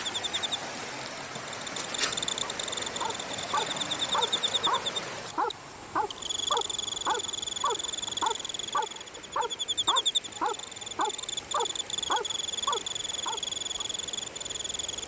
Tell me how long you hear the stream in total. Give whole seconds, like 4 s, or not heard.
15 s.